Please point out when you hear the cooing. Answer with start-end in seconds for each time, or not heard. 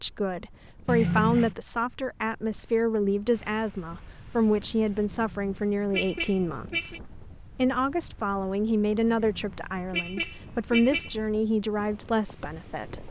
not heard.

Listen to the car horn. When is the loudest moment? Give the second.
1 s.